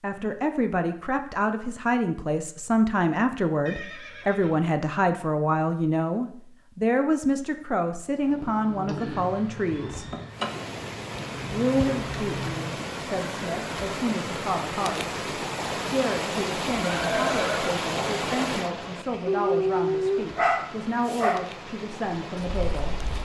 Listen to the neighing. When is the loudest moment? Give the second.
17 s.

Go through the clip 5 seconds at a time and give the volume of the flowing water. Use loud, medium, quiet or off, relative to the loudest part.
off, off, loud, loud, medium.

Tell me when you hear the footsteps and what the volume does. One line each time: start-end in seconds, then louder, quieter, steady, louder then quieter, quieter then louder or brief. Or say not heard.
not heard.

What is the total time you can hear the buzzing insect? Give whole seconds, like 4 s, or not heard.
5 s.